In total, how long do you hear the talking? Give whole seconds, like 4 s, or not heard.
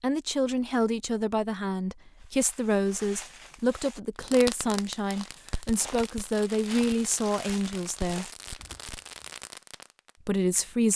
9 s.